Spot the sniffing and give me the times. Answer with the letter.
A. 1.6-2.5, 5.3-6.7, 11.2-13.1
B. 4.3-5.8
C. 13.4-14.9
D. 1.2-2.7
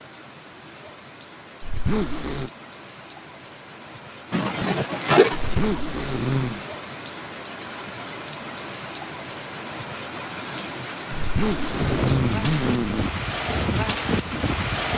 B.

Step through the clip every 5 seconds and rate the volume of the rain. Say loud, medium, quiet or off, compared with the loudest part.
quiet, medium, loud.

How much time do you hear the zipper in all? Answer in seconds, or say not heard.
4 s.